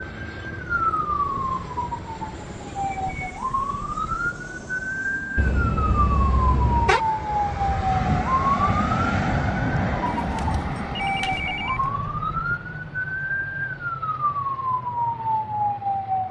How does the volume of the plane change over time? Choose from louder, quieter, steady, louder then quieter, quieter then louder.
louder then quieter.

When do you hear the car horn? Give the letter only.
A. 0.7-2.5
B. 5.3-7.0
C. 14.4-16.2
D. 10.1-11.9
B.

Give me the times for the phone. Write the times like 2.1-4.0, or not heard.
10.1-11.9.